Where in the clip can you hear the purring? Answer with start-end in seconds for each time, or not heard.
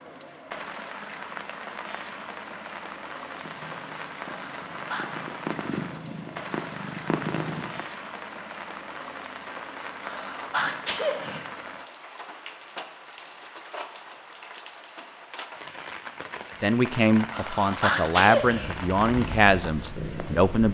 3.3-7.8, 18.6-20.4.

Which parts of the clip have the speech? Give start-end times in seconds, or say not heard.
16.6-20.6.